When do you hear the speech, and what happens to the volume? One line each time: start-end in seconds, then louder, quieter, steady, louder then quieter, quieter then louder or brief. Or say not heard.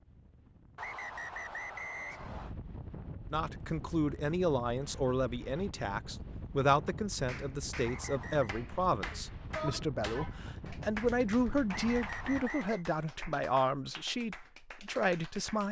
3.3-15.6 steady.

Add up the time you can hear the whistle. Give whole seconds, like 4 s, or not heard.
4 s.